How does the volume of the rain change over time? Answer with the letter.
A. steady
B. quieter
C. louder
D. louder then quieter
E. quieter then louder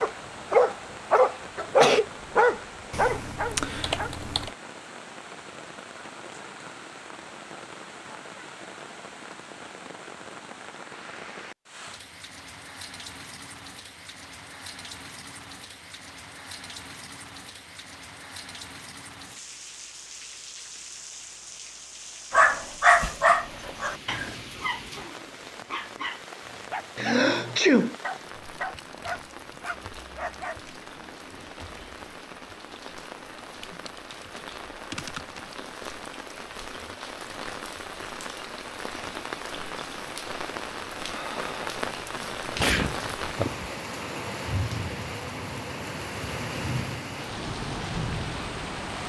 C.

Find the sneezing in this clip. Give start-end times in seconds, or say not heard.
1.6-2.0, 26.9-27.9, 42.5-43.7.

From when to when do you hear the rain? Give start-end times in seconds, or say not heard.
0.0-49.0.